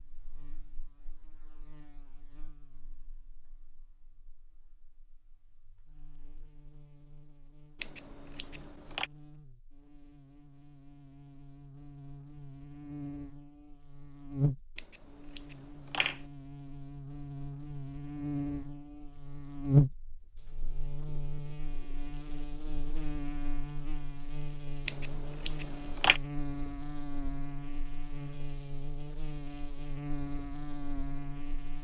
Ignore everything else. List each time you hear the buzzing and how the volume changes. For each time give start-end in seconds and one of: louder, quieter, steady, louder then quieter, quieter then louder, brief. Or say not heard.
0.0-31.7 louder then quieter.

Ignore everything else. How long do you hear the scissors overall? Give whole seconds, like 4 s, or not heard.
4 s.